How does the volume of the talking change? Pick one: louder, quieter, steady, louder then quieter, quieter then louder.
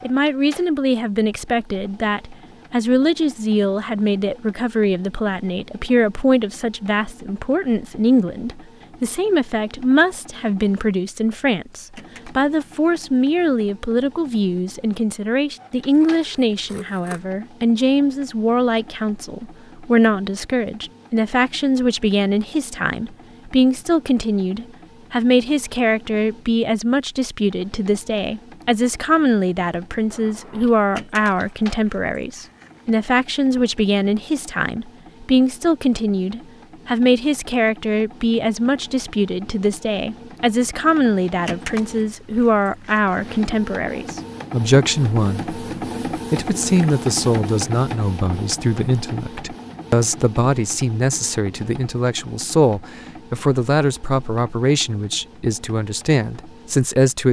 steady.